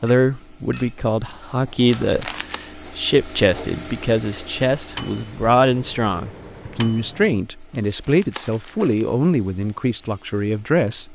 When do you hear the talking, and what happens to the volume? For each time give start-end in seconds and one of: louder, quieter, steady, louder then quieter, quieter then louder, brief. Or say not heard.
0.0-11.1 steady.